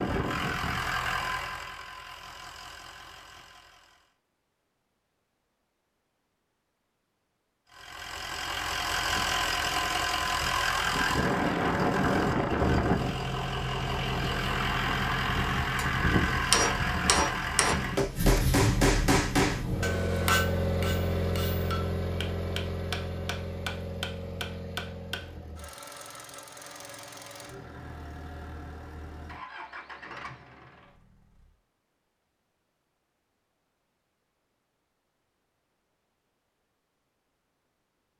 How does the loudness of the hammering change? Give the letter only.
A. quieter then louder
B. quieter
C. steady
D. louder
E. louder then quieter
B.